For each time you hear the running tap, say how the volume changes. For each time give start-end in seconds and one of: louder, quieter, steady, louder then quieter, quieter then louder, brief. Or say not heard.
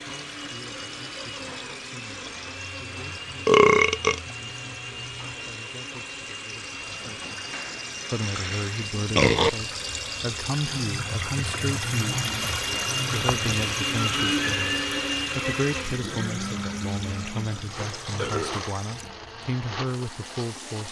0.0-20.8 louder then quieter.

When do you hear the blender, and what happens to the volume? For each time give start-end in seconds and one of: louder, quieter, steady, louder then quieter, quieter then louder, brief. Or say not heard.
0.0-20.8 louder then quieter.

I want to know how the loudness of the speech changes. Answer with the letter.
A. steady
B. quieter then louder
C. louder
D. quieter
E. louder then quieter
C.